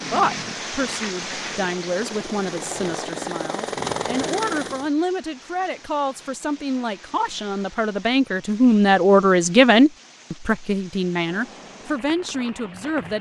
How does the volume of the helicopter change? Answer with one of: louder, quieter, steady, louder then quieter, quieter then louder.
louder.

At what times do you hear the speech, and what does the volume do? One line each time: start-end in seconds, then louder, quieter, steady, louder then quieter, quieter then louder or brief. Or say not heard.
0.0-13.1 louder then quieter.